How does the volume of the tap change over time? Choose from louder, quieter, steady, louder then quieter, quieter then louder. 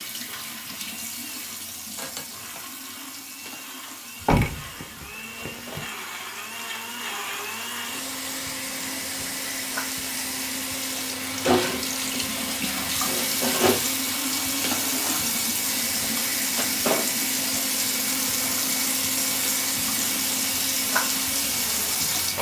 louder.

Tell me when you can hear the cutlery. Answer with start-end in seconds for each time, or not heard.
not heard.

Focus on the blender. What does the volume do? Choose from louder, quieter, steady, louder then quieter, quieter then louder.
louder.